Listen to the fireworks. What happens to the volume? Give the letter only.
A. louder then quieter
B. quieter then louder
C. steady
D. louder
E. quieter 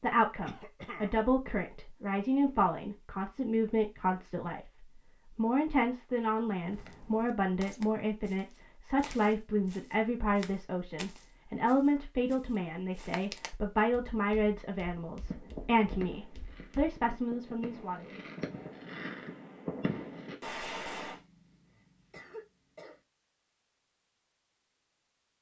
D.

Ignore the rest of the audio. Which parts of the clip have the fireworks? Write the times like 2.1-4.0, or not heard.
15.2-21.2.